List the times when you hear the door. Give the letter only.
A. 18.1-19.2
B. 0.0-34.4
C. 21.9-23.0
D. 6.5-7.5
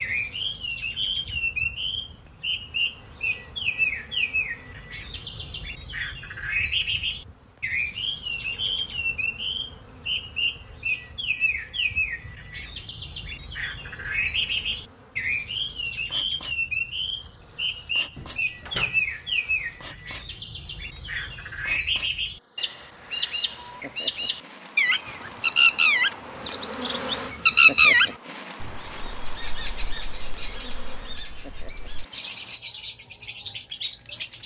A.